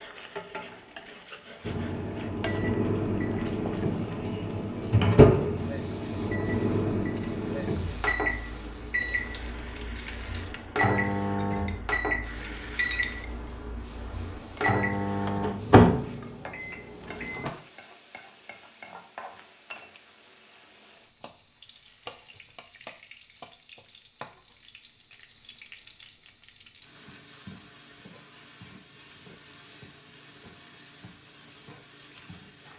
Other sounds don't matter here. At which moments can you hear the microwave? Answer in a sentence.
You can hear the microwave from 1.6 to 17.5 s.